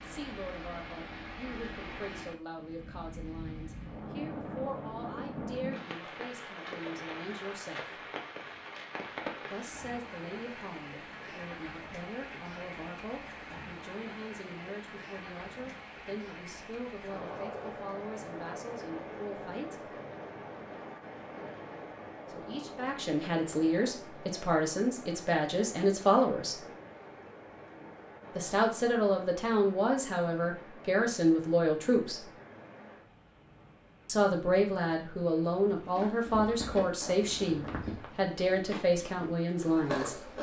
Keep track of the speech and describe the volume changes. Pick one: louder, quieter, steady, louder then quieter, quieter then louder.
louder.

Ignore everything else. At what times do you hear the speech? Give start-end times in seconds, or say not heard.
0.0-8.1, 9.5-19.9, 22.2-26.6, 28.4-32.3, 34.0-40.2.